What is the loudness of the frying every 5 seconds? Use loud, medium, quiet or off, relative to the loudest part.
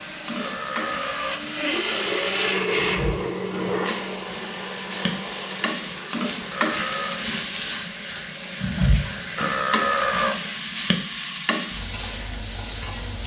medium, loud, loud.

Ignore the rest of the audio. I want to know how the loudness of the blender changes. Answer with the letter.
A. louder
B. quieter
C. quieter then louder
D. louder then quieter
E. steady
B.